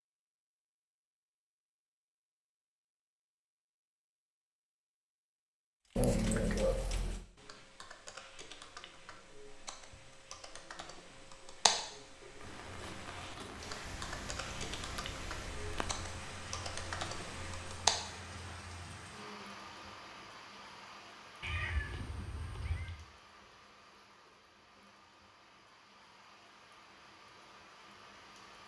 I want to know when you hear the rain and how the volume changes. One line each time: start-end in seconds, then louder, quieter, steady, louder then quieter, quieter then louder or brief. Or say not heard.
12.3-28.6 quieter.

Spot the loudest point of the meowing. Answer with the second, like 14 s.
6 s.